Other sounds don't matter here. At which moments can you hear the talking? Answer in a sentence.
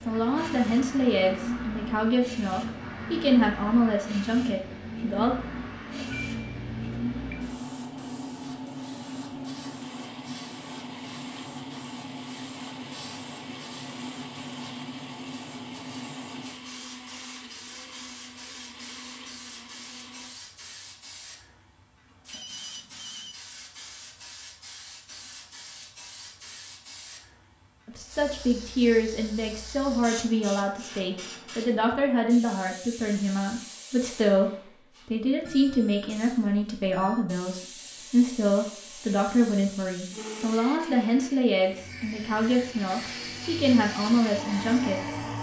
The talking can be heard from 0.1 to 5.3 s and from 27.9 to 45.1 s.